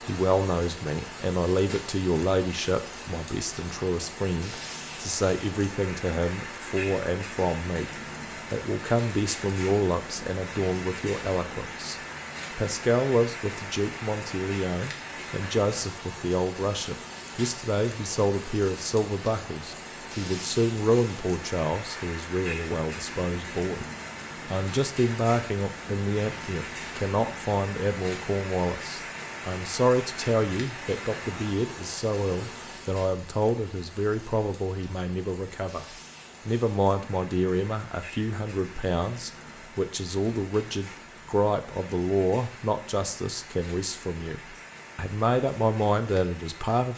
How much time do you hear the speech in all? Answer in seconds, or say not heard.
45 s.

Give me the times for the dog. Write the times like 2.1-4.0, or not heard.
not heard.